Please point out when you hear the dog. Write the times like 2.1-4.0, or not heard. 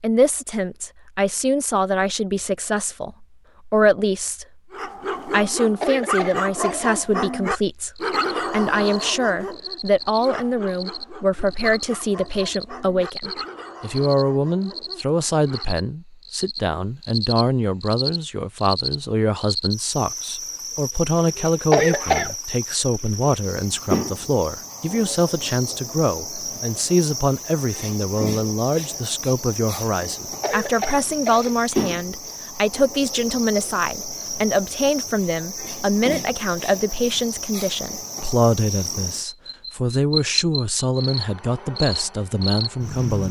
4.7-15.7.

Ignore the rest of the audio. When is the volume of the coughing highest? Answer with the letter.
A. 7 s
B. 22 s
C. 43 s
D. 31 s
B.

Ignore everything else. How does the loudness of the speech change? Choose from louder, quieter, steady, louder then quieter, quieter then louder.
steady.